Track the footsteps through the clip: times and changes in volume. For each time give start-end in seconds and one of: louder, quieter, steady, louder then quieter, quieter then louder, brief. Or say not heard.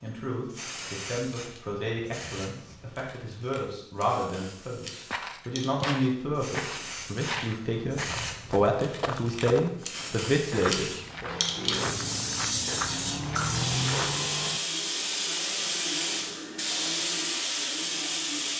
5.0-14.3 steady.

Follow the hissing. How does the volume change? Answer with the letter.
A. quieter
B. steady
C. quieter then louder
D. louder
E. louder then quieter
D.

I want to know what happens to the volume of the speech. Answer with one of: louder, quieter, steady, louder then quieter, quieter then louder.
louder.